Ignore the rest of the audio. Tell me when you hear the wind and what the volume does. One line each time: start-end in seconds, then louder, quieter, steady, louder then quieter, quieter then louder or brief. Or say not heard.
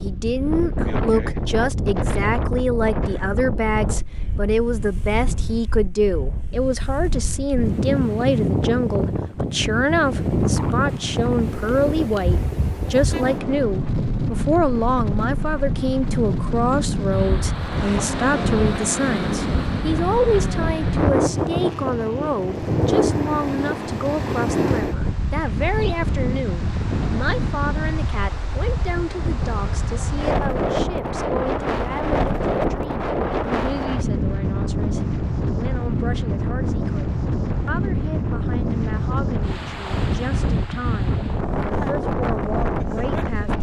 0.0-43.5 steady.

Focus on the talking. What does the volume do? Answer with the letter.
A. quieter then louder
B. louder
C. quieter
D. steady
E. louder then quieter
C.